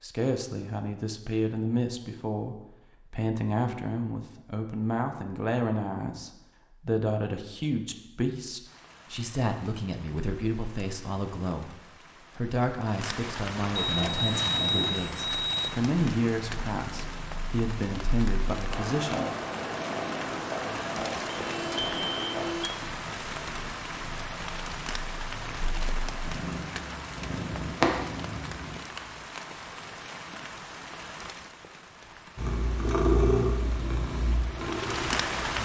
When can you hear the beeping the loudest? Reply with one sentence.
The volume of the beeping peaks at 15 seconds.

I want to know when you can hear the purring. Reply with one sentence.
The purring can be heard from 13.9 to 28.9 s and from 32.4 to 35.6 s.